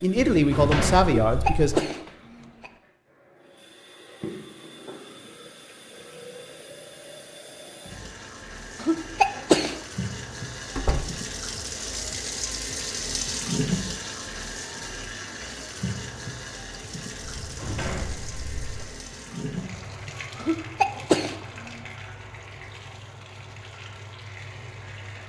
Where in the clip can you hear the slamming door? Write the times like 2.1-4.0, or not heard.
0.1-1.8, 10.8-11.2, 17.2-18.9.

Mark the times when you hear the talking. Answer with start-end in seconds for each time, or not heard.
0.0-1.8.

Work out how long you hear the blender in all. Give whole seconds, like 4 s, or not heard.
not heard.